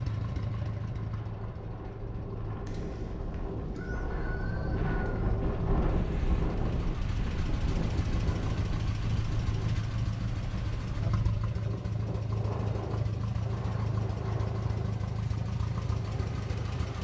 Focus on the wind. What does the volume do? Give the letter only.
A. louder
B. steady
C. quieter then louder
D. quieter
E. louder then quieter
E.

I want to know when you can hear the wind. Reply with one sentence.
You can hear the wind from 0.0 to 16.9 s.